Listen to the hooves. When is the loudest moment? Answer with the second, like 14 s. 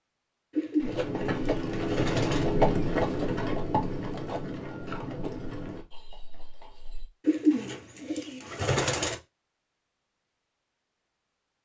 3 s.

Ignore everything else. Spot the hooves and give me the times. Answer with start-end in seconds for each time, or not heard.
0.8-7.1.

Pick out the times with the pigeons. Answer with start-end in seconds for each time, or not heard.
0.6-2.5, 7.2-9.2.